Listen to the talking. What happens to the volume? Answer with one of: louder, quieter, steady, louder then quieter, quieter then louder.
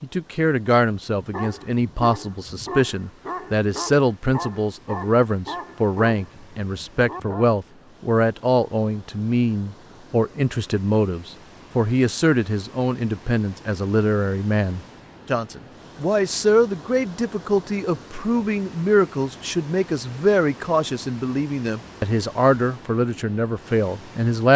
steady.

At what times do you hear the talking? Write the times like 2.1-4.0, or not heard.
0.0-24.5.